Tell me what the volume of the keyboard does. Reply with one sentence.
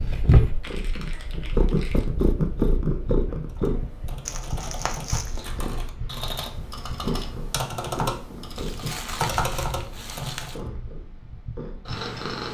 The loudness of the keyboard goes up.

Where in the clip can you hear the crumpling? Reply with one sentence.
The crumpling can be heard from 0.6 to 2.1 s, from 4.2 to 5.4 s and from 8.6 to 10.6 s.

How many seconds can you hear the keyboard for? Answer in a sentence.
You can hear the keyboard for 7 seconds altogether.